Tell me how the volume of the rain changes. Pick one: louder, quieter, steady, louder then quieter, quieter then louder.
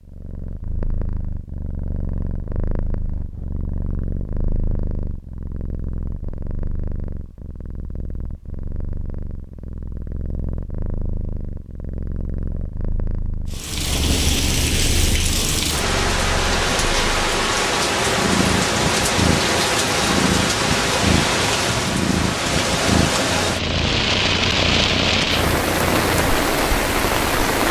steady.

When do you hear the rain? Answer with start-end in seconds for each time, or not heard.
13.5-27.6.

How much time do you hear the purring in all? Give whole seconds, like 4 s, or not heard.
27 s.